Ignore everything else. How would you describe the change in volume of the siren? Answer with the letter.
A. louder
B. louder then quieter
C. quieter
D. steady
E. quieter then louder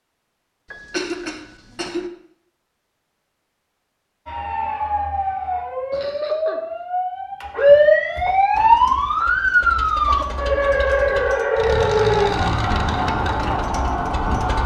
B.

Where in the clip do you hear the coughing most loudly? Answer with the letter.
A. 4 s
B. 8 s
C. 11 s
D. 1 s
D.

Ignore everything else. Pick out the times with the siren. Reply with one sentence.
The siren can be heard from 4.2 to 14.6 s.